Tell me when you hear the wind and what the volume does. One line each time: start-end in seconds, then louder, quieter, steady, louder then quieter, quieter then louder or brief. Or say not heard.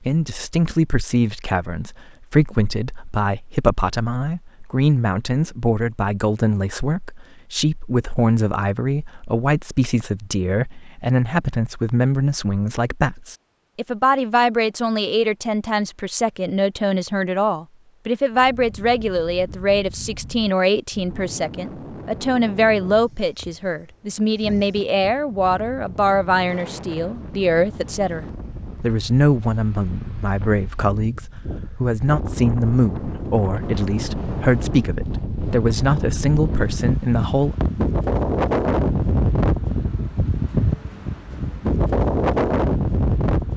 18.3-43.5 louder.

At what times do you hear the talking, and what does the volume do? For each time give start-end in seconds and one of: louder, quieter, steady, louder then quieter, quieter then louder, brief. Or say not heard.
0.0-37.5 steady.